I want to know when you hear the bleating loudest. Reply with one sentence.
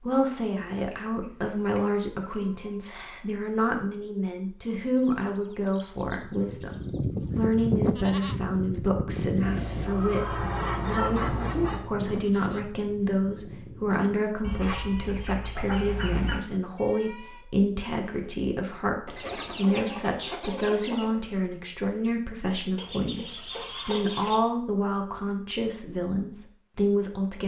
The volume of the bleating peaks at 8 seconds.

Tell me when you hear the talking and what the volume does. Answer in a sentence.
You can hear the talking from 0.0 to 27.4 s, at a steady volume.